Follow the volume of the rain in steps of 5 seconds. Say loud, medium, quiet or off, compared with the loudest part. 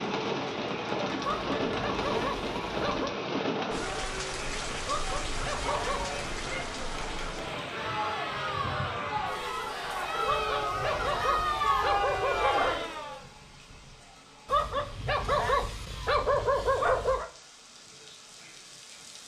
loud, medium, quiet, quiet.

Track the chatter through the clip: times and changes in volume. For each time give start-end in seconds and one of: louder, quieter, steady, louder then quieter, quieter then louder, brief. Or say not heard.
0.2-13.2 louder.